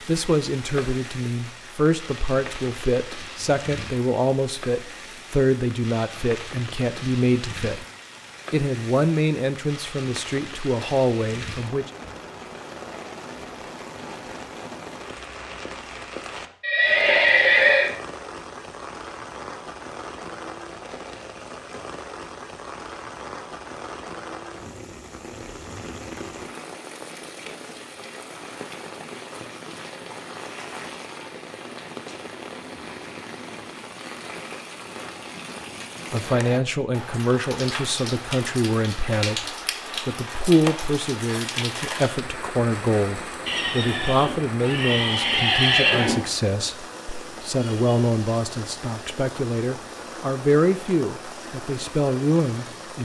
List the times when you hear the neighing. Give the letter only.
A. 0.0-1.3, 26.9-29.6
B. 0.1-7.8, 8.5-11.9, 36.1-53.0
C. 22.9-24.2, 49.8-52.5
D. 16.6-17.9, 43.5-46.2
D.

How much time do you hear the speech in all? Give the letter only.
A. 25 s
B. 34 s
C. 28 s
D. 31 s
C.